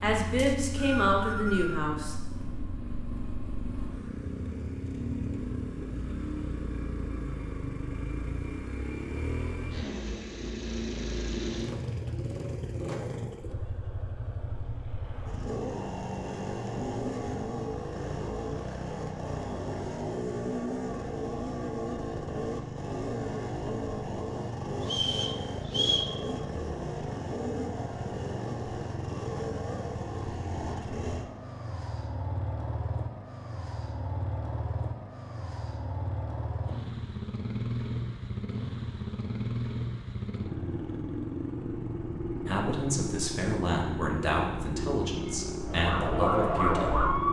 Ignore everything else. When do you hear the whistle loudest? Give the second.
26 s.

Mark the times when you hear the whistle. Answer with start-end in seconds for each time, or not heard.
0.3-1.9, 24.9-26.1.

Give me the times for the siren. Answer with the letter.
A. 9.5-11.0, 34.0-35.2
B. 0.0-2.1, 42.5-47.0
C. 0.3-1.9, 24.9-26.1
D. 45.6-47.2
D.